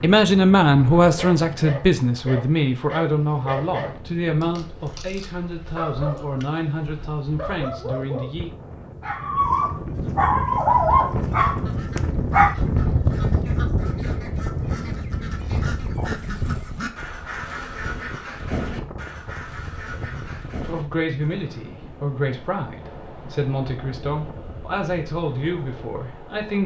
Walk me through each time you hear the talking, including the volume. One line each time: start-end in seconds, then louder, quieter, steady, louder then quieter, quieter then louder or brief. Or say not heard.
0.0-8.5 quieter
20.6-26.6 steady.